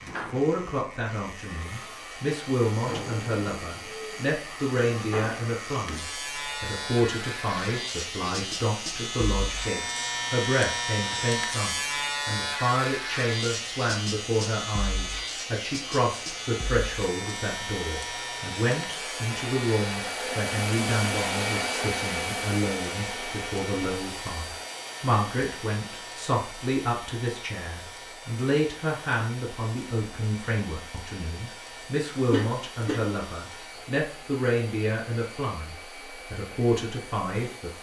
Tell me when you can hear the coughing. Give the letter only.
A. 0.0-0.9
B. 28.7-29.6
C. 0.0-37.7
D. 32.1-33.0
D.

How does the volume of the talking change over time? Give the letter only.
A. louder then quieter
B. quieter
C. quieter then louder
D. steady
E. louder
D.